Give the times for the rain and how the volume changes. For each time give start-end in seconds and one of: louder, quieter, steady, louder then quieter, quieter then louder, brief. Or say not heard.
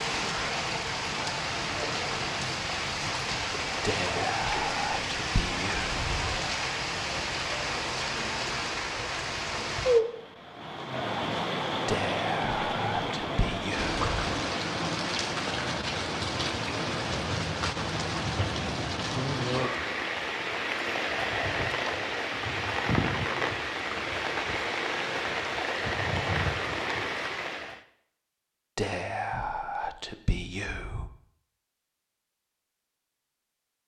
0.0-27.8 steady.